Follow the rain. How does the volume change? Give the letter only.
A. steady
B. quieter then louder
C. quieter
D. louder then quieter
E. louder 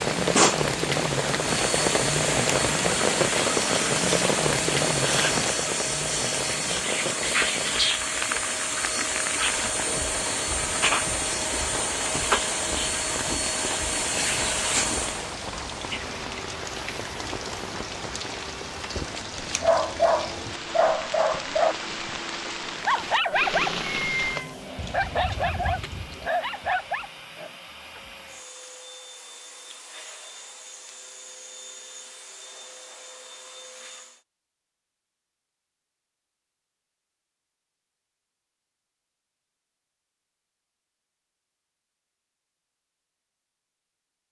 C.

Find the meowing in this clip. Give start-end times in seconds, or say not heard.
23.8-24.6.